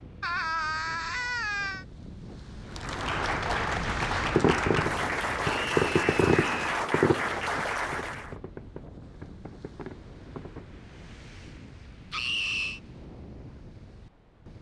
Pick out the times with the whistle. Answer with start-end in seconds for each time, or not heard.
not heard.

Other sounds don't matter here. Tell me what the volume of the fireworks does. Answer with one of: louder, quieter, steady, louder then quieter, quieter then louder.
quieter.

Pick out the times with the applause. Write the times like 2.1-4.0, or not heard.
2.6-8.3.